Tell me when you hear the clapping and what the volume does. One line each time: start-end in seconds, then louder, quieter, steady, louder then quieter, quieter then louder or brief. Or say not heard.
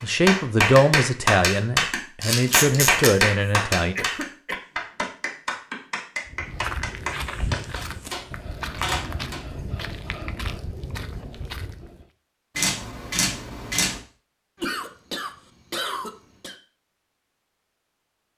0.0-7.6 quieter.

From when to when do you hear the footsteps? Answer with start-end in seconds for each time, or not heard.
6.2-12.1.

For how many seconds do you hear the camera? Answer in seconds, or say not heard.
4 s.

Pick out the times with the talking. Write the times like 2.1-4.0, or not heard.
0.0-4.0.